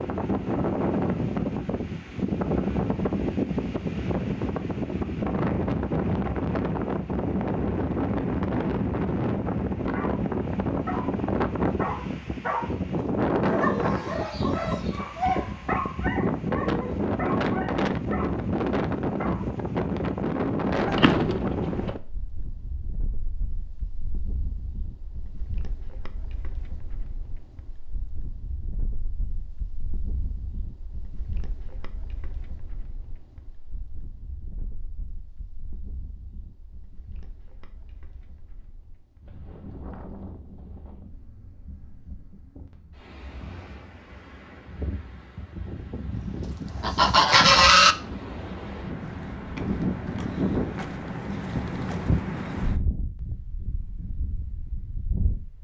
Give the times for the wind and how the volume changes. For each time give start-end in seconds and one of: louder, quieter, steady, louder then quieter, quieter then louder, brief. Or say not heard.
0.0-55.6 quieter then louder.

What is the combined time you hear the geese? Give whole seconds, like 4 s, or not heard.
3 s.